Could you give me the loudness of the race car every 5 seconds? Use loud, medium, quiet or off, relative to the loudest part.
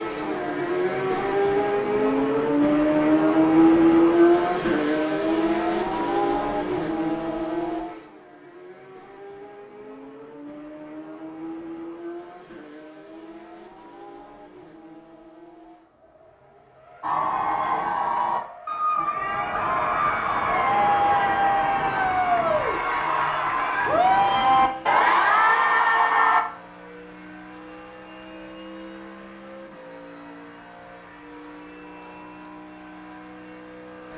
loud, medium, quiet, quiet, quiet, quiet, quiet.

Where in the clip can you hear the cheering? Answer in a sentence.
You can hear the cheering from 17.0 to 26.4 s.